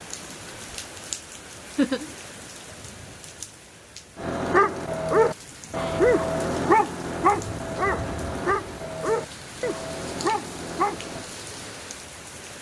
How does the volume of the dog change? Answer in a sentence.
The loudness of the dog goes down.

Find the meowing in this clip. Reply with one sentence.
The meowing can't be heard in this clip.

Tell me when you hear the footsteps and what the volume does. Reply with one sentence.
You can't hear the footsteps here.